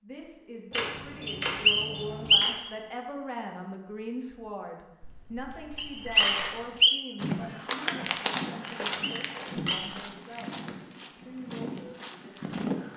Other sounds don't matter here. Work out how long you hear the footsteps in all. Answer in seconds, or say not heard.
6 s.